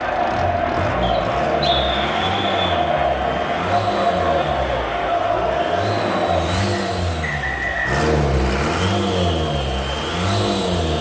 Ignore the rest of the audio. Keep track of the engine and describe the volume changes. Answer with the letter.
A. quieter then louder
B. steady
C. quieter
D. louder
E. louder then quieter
D.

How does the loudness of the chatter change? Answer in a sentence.
The volume of the chatter goes down.